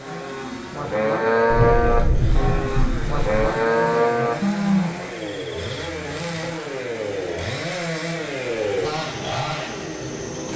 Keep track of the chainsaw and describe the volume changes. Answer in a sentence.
The loudness of the chainsaw goes up.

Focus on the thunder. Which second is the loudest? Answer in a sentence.
The volume of the thunder peaks at 2 seconds.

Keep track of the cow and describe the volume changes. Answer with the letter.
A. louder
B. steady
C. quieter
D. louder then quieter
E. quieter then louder
C.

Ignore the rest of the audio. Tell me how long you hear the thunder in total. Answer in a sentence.
You can hear the thunder for 2 seconds altogether.